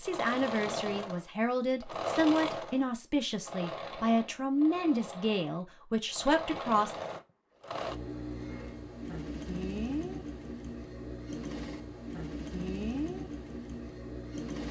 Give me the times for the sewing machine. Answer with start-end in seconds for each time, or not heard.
0.0-14.6.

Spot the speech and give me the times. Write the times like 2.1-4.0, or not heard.
0.0-7.0.